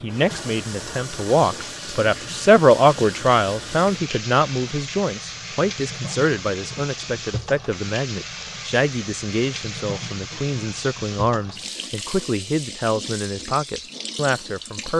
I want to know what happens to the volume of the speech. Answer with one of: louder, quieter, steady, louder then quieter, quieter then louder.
quieter.